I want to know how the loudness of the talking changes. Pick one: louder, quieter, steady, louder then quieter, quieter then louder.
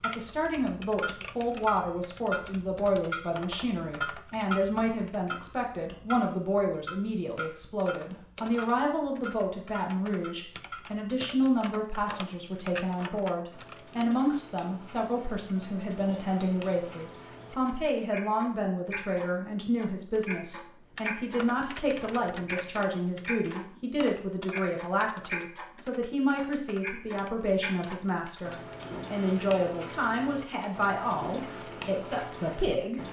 steady.